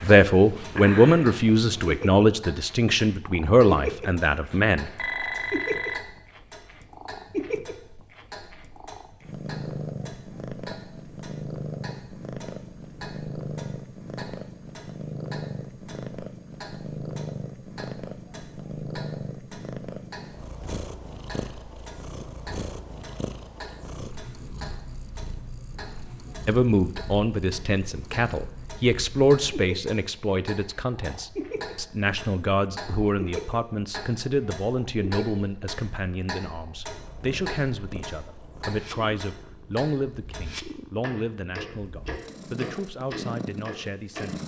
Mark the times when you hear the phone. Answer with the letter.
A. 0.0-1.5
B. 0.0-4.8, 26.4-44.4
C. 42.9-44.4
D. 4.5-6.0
D.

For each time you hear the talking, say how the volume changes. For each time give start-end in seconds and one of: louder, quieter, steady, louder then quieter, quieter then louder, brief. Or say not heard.
0.0-4.8 quieter
26.4-44.4 quieter.